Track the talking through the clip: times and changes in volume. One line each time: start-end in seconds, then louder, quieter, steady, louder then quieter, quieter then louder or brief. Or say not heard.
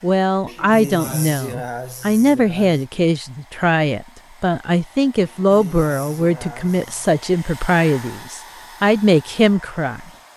0.0-10.3 steady.